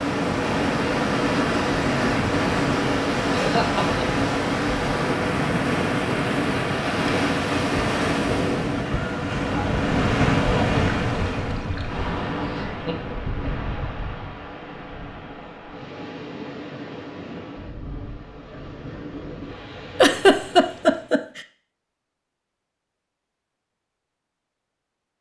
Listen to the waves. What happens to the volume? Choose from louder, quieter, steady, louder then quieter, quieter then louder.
quieter.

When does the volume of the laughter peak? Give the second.
20 s.